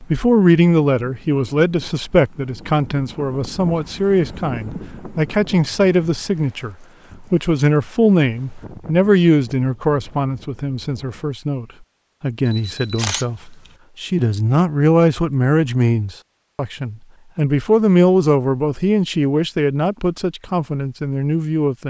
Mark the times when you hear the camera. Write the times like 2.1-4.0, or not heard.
12.4-13.7.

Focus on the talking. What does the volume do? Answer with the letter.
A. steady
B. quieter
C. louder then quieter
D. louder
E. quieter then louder
A.